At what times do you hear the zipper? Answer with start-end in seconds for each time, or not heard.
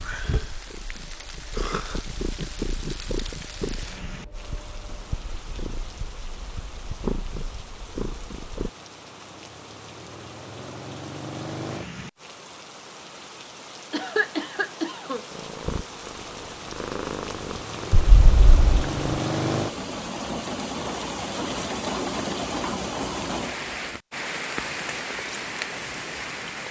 not heard.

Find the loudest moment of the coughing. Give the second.
14 s.